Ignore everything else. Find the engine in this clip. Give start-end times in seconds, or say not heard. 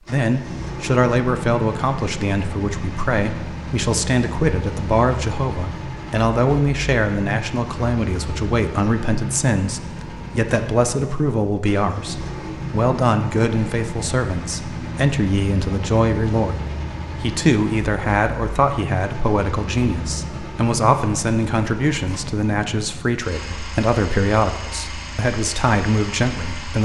0.1-26.8.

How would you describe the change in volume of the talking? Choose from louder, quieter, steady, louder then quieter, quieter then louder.
steady.